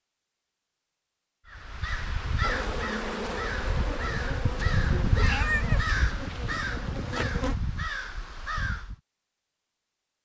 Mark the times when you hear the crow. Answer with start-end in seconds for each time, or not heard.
1.4-8.9.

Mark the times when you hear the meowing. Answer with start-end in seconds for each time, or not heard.
5.0-5.8.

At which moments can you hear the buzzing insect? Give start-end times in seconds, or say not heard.
2.4-7.5.